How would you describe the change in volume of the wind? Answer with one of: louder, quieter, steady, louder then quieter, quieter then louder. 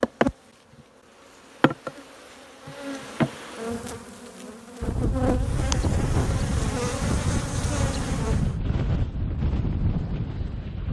steady.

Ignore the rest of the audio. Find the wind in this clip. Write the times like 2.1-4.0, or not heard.
4.8-10.8.